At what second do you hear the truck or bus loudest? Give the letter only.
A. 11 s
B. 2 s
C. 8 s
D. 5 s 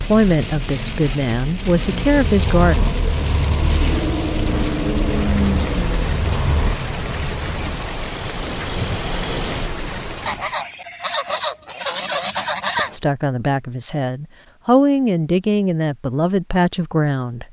D.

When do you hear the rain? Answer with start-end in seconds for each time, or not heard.
0.0-10.6.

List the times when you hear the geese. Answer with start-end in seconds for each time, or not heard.
10.2-12.9.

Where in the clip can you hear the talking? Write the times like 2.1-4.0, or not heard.
0.0-3.0, 12.9-17.4.